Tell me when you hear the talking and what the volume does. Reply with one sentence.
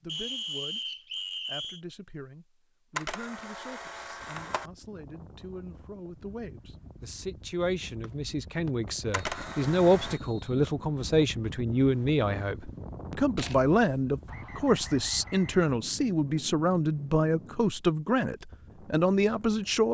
You can hear the talking from 0.0 to 19.8 s, getting louder.